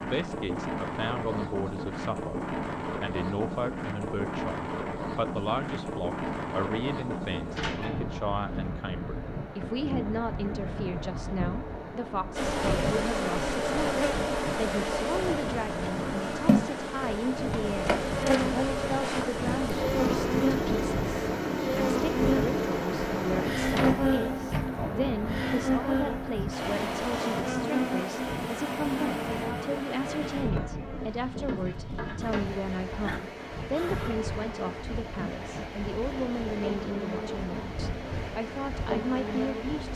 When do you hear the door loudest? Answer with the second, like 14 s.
24 s.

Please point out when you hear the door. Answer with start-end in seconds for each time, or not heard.
7.5-8.7, 23.7-24.8.